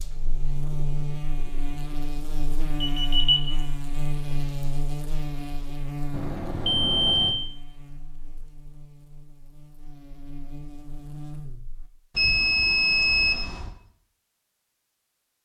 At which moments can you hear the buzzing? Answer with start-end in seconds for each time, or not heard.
0.0-11.9.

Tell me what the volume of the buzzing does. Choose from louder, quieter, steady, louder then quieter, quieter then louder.
quieter then louder.